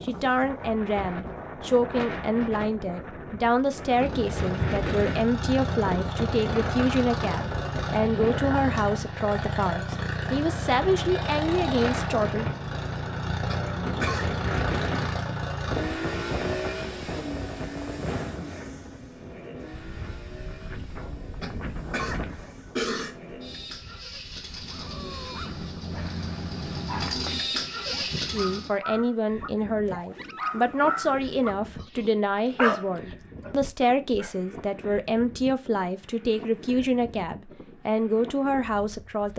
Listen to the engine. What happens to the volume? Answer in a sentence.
The loudness of the engine goes down, then up.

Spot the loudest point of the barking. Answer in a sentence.
The loudest moment of the barking is at 33 seconds.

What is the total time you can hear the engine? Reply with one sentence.
The engine can be heard for 25 seconds in total.